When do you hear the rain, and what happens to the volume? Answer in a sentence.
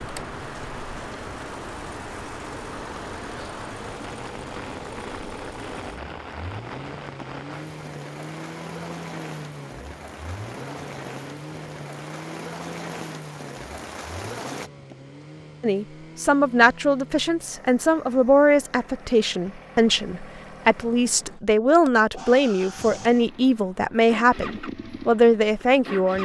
The rain can be heard from 0.0 to 14.7 s, at a steady volume.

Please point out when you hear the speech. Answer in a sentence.
The speech can be heard from 15.6 to 26.1 s.